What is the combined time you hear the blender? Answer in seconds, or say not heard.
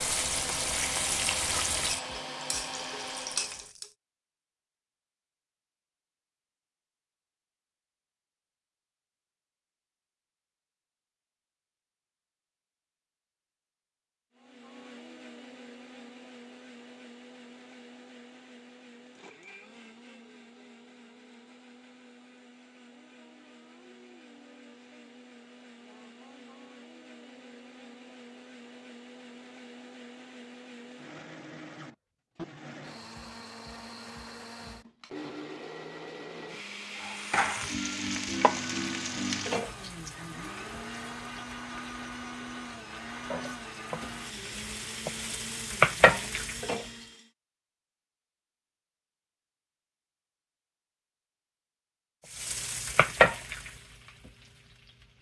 37 s.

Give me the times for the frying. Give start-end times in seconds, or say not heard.
0.0-3.9, 37.0-47.0, 52.2-55.1.